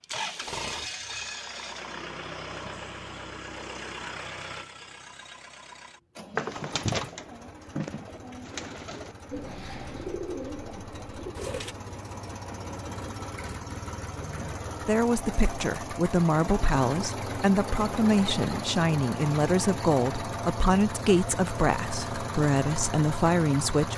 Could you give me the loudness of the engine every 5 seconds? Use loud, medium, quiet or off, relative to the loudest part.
loud, quiet, medium, loud, loud.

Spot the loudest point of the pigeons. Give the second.
7 s.